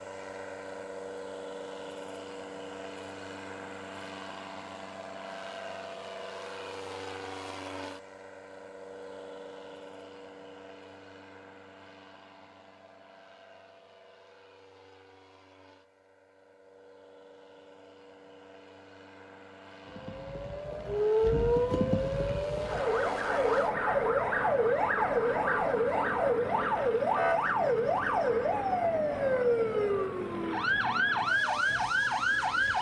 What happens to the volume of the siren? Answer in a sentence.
The volume of the siren stays about the same.